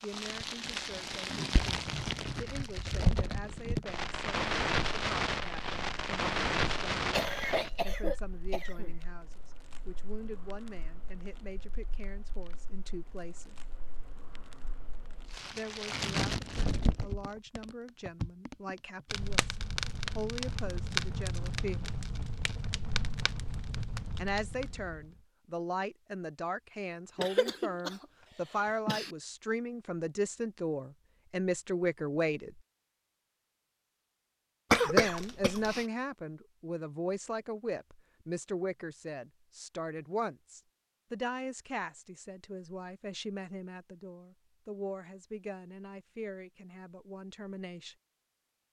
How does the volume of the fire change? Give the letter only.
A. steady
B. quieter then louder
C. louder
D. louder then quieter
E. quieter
B.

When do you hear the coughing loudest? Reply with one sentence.
The volume of the coughing peaks at 35 seconds.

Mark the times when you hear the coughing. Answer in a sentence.
The coughing can be heard from 7.1 to 8.9 s, from 27.1 to 29.1 s and from 34.7 to 35.9 s.